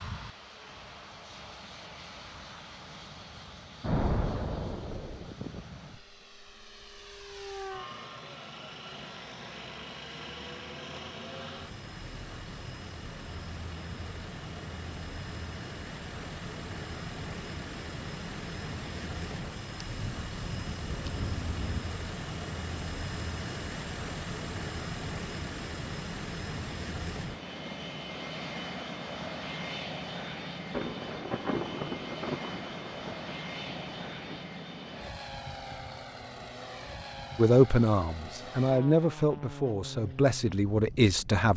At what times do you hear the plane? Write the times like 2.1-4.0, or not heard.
0.0-41.5.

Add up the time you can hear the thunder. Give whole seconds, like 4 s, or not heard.
7 s.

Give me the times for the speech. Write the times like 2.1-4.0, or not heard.
37.4-41.5.